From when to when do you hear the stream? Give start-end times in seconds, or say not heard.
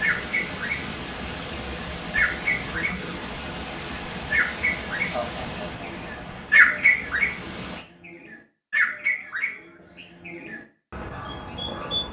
0.0-7.8.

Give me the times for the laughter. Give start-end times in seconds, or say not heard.
5.1-6.4.